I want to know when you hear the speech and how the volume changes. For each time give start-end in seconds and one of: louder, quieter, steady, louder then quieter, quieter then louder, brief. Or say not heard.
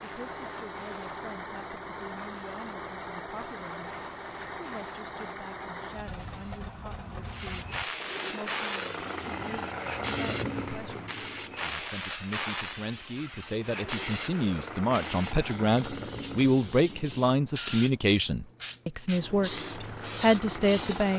0.0-19.6 louder
20.2-21.1 brief.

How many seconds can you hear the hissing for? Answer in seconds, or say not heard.
21 s.